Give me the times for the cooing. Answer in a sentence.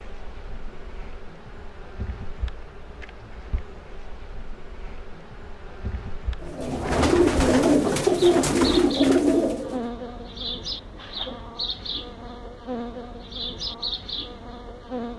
You can hear the cooing from 6.4 to 9.9 s.